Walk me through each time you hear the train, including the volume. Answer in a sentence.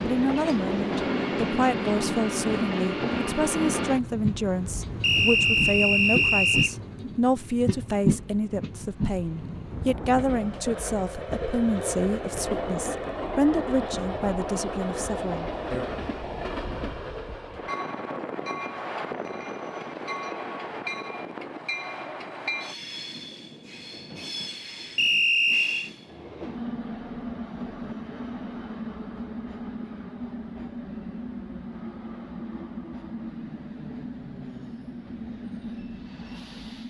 The train can be heard from 0.0 to 36.8 s, getting quieter.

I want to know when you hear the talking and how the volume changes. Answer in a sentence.
The talking can be heard from 0.0 to 15.9 s, at a steady volume.